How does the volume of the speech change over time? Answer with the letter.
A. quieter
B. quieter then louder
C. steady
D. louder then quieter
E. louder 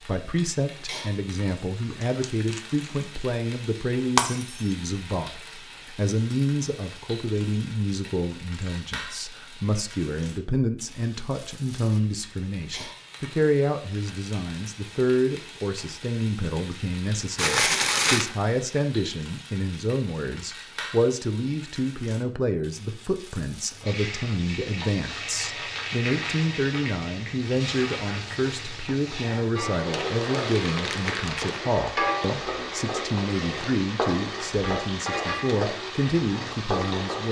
C.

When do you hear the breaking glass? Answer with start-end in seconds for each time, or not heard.
4.2-4.7.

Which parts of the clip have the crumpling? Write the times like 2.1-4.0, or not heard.
1.8-3.0, 17.4-18.3, 29.9-31.6.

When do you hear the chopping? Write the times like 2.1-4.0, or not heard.
not heard.